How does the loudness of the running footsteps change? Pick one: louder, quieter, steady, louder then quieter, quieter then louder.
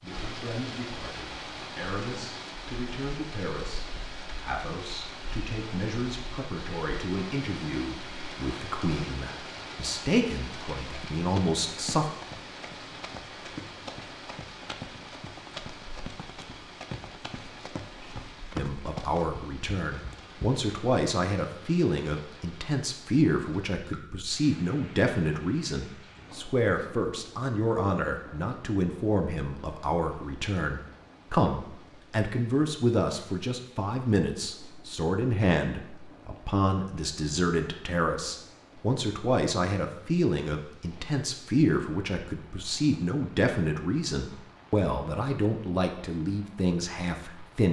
louder.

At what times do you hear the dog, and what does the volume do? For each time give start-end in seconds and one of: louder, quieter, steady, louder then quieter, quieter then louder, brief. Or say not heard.
not heard.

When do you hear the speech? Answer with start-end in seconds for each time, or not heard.
0.0-12.1, 18.6-47.6.